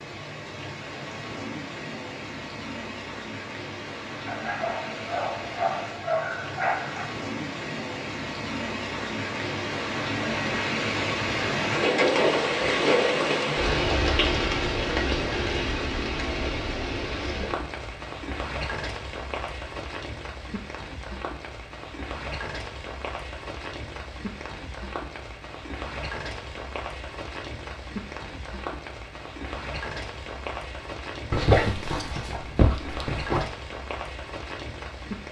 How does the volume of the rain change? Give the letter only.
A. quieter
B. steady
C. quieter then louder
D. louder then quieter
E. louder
D.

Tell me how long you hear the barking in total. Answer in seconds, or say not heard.
5 s.